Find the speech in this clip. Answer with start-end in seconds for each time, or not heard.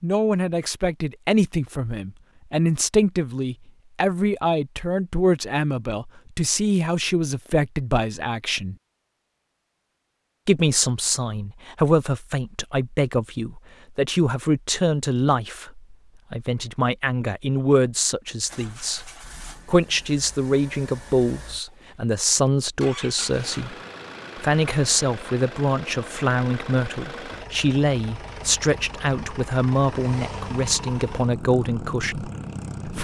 0.0-8.8, 10.4-19.0, 19.6-23.8, 24.4-33.0.